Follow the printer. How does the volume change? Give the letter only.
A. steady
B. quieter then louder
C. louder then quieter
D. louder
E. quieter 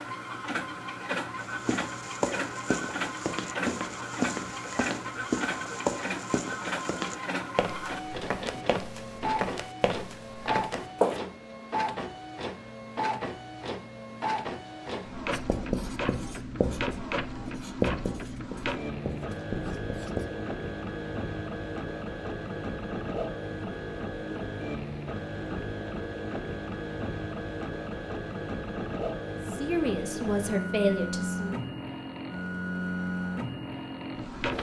A.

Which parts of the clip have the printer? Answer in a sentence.
You can hear the printer from 0.0 to 34.5 s.